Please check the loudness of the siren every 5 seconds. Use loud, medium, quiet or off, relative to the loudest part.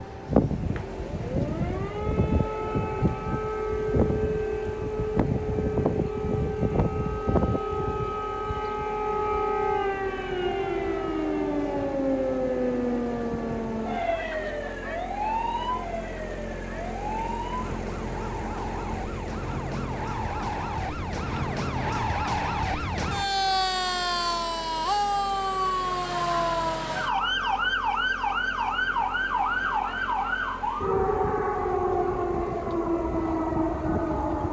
loud, loud, loud, medium, loud, loud, loud.